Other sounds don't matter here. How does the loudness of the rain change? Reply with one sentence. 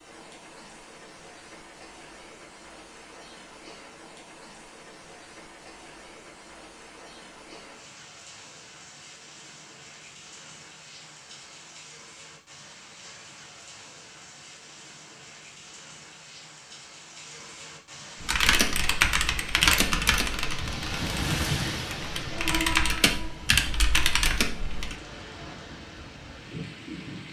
The volume of the rain goes up.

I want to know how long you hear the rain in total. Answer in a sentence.
You can hear the rain for 27 seconds altogether.